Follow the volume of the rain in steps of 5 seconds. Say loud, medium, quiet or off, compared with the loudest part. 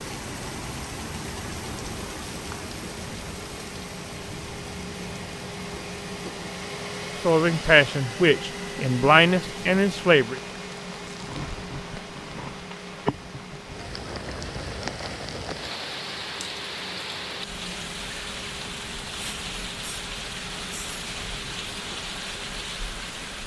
loud, medium, loud, loud, loud.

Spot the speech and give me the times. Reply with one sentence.
You can hear the speech from 7.2 to 10.4 s.